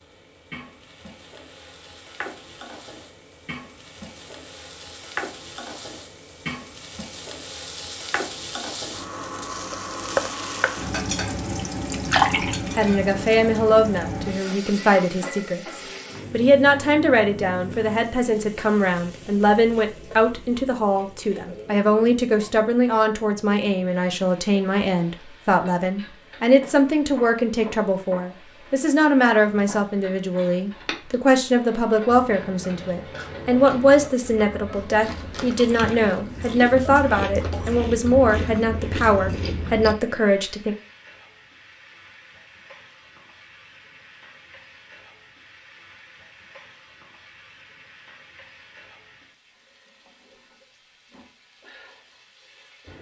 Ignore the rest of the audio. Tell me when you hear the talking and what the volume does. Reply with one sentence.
You can hear the talking from 12.8 to 40.8 s, at a steady volume.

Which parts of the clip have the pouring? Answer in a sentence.
The pouring can be heard from 11.9 to 12.8 s.